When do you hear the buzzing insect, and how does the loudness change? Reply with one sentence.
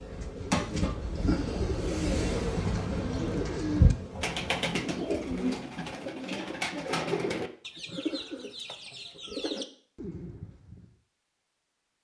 You can hear the buzzing insect from 0.0 to 5.6 s, getting quieter.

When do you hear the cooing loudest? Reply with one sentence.
The loudest moment of the cooing is at 4 seconds.